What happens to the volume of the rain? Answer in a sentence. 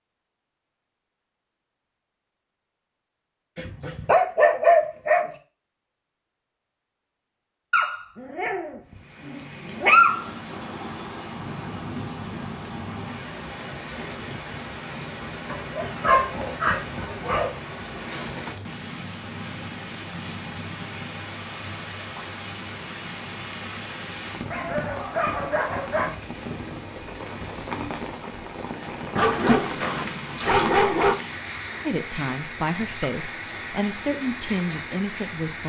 The volume of the rain stays about the same.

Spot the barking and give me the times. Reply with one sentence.
You can hear the barking from 3.5 to 5.3 s, from 7.7 to 10.3 s, from 15.5 to 17.5 s, from 24.5 to 26.2 s and from 29.1 to 31.1 s.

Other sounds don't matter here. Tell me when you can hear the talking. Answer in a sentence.
The talking can be heard from 31.9 to 35.6 s.